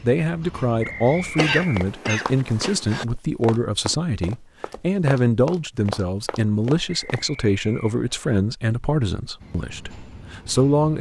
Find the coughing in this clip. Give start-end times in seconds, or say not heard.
1.4-3.0.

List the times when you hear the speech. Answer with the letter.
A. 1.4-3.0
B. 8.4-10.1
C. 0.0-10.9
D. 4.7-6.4
C.